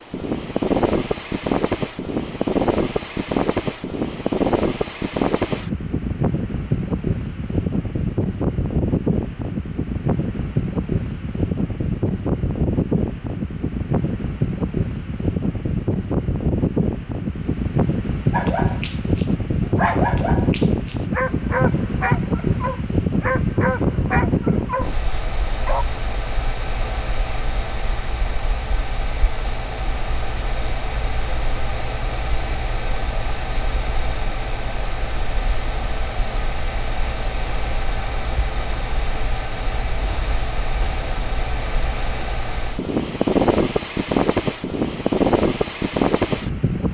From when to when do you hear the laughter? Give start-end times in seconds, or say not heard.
not heard.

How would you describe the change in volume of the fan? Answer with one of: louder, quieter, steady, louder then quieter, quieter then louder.
quieter then louder.